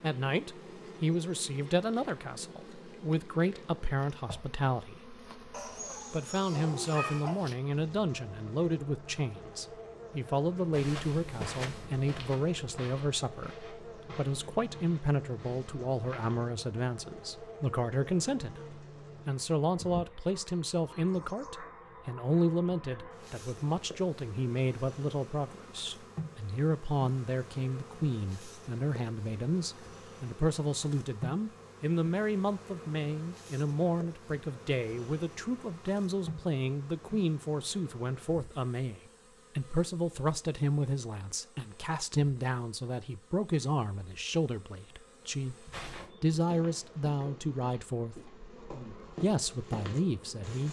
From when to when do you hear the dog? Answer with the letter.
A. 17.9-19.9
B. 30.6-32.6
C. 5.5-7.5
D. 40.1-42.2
C.